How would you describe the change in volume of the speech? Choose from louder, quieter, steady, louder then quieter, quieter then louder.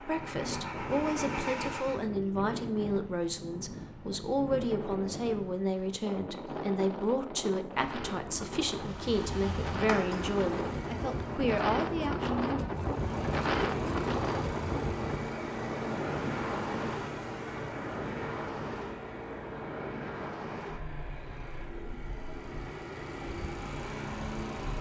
steady.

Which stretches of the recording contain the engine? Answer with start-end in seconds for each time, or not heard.
0.0-2.0, 8.7-11.5, 12.7-24.7.